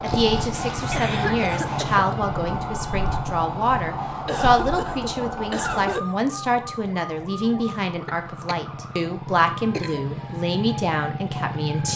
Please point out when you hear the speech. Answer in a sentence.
You can hear the speech from 0.0 to 11.9 s.